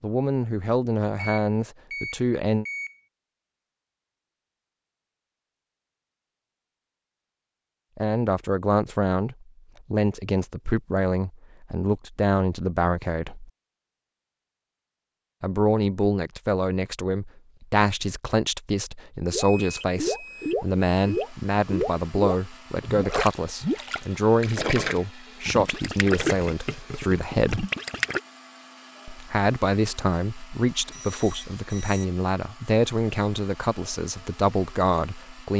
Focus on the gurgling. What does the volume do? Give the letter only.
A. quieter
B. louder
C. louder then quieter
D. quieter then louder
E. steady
E.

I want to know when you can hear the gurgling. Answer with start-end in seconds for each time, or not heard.
19.3-28.2.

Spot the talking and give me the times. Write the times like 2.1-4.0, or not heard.
0.0-2.6, 8.0-13.5, 15.4-27.7, 29.1-35.5.